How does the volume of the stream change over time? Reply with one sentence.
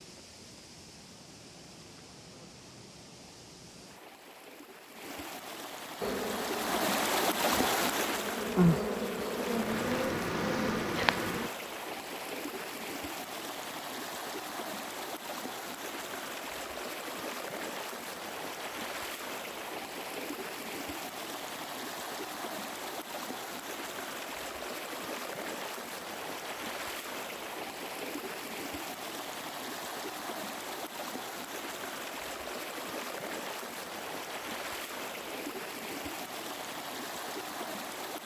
The loudness of the stream stays about the same.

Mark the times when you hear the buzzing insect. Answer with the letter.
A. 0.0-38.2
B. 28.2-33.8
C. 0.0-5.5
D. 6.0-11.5
D.